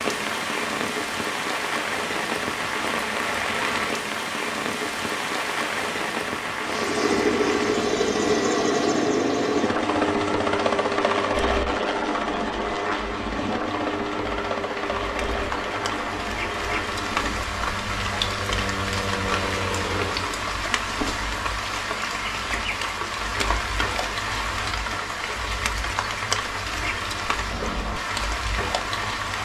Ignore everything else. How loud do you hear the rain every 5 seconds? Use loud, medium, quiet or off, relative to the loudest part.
loud, loud, medium, loud, loud, loud.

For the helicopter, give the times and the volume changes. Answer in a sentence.
The helicopter can be heard from 6.6 to 20.5 s, getting quieter.